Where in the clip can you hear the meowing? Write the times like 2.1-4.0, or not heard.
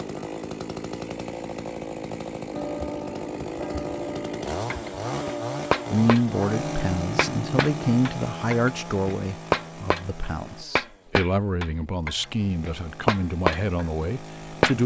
not heard.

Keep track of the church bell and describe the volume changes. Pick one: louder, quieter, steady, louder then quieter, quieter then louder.
steady.